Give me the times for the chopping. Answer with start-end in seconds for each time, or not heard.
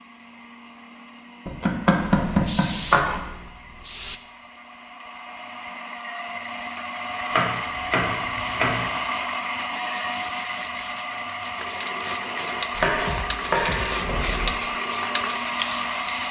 1.4-3.2, 7.3-8.9, 12.8-14.6.